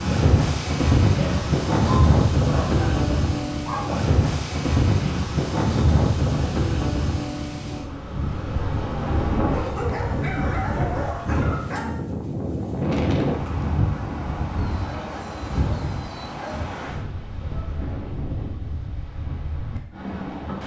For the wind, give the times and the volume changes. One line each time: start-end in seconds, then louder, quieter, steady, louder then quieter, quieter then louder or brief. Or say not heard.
0.0-20.6 quieter.